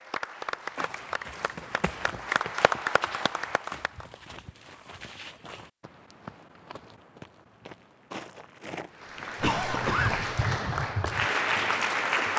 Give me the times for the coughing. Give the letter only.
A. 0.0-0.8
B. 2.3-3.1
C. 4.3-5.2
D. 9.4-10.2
D.